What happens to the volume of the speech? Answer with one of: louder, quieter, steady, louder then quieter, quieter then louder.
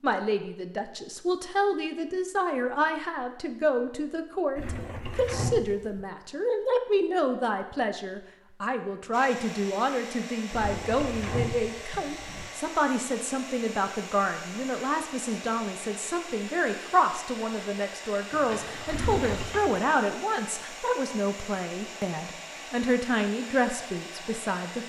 steady.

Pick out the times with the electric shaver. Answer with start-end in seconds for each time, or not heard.
not heard.